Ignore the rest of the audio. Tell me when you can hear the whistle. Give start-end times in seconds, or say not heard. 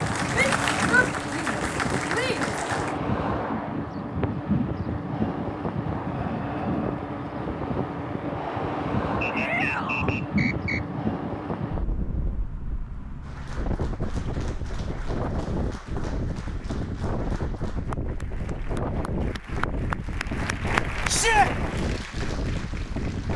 9.2-10.8.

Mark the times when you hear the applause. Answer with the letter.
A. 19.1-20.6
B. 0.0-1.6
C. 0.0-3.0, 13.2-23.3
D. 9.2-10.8
C.